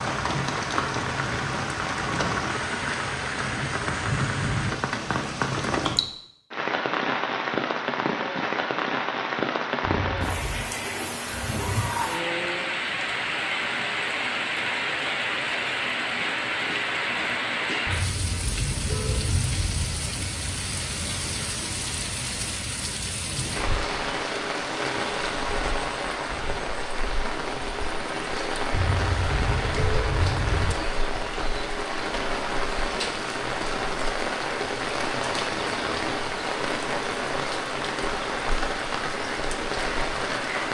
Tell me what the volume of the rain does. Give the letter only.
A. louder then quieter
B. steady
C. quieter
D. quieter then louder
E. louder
B.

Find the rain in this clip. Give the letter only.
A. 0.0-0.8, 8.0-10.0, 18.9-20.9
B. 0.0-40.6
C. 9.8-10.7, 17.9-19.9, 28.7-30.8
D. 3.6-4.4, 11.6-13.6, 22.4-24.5
B.